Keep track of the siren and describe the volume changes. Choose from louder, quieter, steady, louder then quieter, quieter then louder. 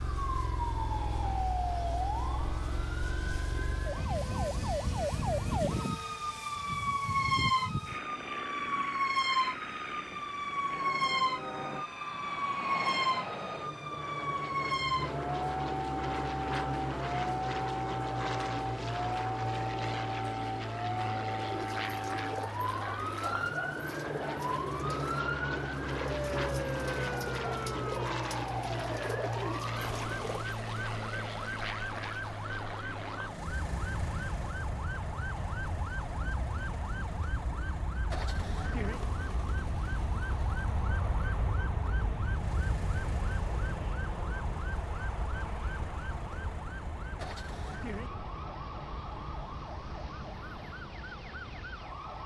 quieter.